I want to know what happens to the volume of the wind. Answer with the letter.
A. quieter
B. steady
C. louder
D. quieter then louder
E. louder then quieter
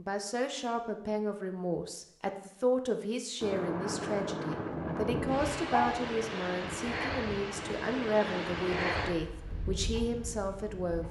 A.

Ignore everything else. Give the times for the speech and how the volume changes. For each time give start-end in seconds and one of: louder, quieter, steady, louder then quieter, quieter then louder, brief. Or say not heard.
0.0-11.0 steady.